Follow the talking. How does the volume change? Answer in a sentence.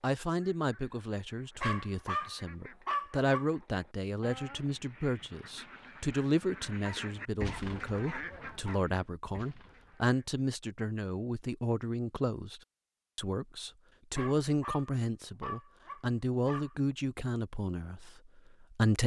The volume of the talking stays about the same.